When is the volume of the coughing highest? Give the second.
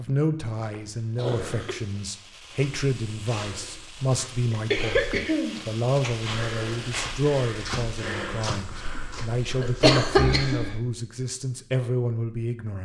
10 s.